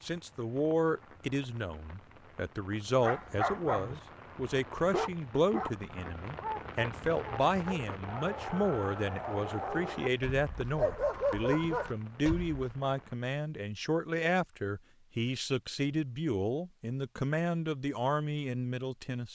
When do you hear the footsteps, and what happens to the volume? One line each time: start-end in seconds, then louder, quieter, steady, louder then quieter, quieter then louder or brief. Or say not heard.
not heard.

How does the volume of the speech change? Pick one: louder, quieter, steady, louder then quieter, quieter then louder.
steady.